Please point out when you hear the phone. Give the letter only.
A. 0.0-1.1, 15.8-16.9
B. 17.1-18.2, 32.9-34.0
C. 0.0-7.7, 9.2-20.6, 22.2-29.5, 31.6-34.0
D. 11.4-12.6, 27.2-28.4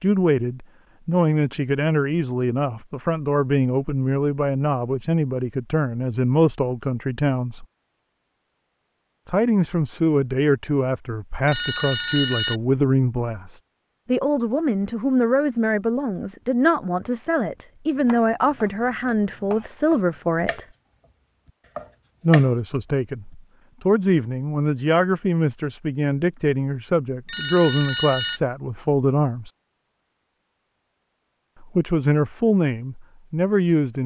D.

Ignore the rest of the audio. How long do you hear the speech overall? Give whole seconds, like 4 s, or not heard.
29 s.